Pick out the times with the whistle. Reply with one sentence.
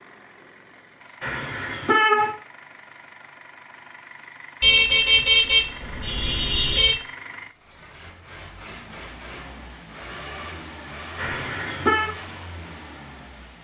You can't hear the whistle here.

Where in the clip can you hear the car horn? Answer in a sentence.
You can hear the car horn from 1.2 to 2.3 s, from 4.6 to 7.0 s and from 11.2 to 12.1 s.